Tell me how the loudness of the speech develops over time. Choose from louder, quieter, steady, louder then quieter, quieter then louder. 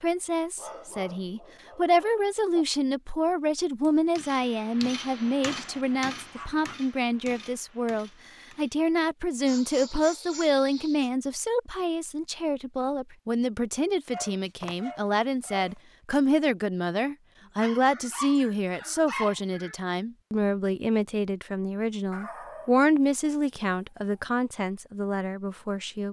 steady.